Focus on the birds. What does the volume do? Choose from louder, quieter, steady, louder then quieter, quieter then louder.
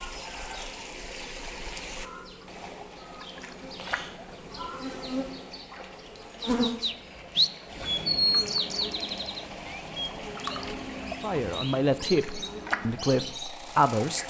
quieter.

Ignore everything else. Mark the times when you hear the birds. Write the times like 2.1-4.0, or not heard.
6.0-14.2.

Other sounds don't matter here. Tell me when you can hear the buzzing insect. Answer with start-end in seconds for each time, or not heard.
0.0-14.2.